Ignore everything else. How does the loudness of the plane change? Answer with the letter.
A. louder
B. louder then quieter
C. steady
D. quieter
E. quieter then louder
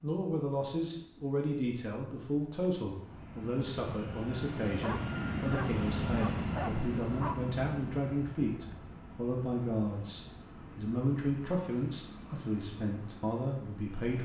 B.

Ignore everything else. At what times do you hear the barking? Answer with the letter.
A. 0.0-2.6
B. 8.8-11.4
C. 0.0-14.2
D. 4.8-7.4
D.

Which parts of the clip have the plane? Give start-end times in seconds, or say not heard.
0.0-14.2.